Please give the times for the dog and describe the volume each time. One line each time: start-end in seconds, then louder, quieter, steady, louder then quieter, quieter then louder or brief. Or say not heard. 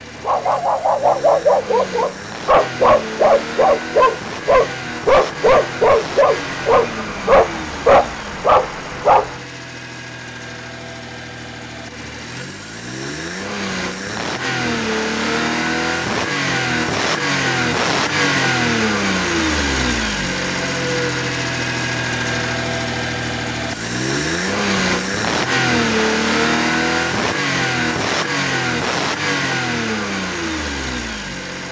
0.2-9.4 steady.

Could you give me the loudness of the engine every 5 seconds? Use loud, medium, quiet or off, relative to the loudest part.
medium, medium, medium, loud, loud, loud, medium.